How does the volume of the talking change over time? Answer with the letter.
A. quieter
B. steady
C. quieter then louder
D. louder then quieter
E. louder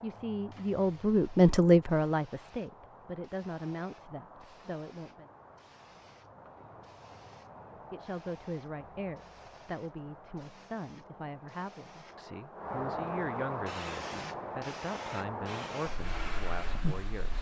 A.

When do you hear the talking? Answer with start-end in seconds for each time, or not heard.
0.0-5.3, 7.7-17.3.